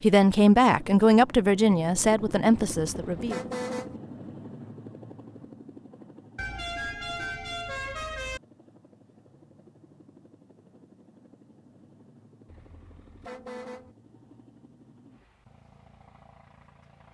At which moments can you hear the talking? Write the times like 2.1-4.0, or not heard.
0.0-3.4.